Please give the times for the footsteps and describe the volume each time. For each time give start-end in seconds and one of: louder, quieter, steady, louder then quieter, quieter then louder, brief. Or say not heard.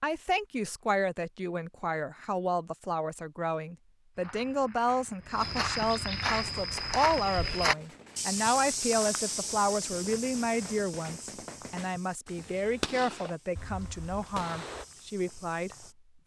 4.2-15.9 quieter.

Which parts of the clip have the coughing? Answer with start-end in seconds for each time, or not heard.
not heard.